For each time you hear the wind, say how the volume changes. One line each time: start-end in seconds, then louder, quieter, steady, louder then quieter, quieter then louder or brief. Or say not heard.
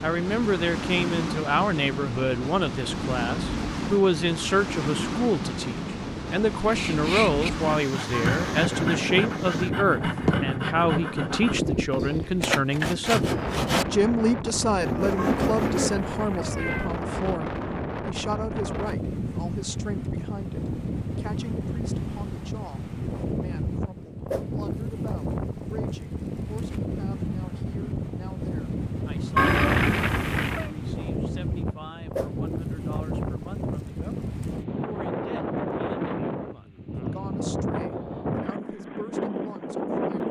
0.0-40.2 steady.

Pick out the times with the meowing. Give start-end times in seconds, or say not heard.
8.1-8.8, 15.2-16.9, 29.4-30.7.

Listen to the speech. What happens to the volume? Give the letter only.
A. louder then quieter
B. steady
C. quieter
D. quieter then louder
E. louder
C.